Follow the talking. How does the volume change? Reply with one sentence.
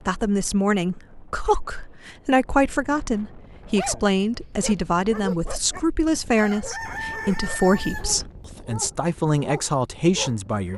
The loudness of the talking stays about the same.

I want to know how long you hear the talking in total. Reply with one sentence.
You can hear the talking for 11 seconds altogether.